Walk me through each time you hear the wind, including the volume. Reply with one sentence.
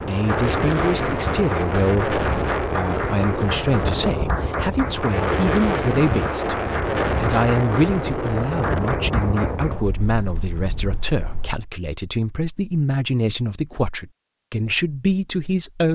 The wind can be heard from 0.0 to 11.6 s, getting quieter.